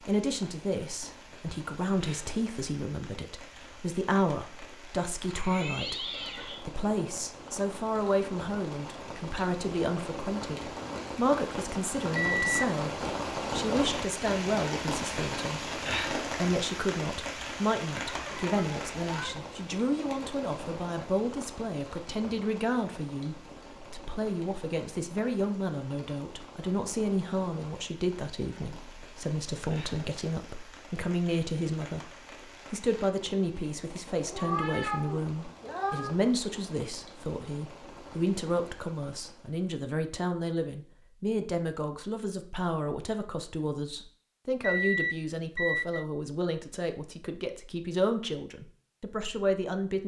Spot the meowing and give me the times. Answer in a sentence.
You can hear the meowing from 5.3 to 6.7 s, from 18.0 to 19.4 s and from 34.2 to 36.1 s.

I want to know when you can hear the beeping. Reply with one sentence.
The beeping can be heard from 12.2 to 12.7 s and from 44.6 to 46.0 s.